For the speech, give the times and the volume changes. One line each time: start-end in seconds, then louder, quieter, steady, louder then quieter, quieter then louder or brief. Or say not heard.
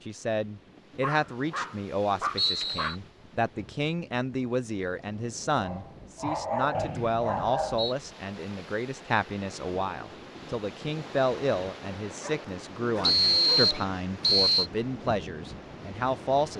0.1-16.5 steady.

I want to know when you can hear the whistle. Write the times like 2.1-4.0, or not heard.
2.4-3.0, 6.7-8.0, 13.0-14.7.